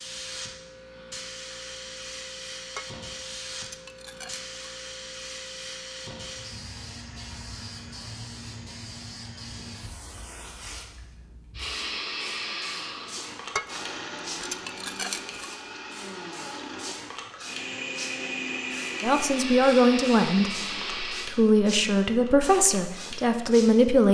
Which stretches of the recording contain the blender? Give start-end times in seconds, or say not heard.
11.6-21.3.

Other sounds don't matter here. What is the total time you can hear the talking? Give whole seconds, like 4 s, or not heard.
5 s.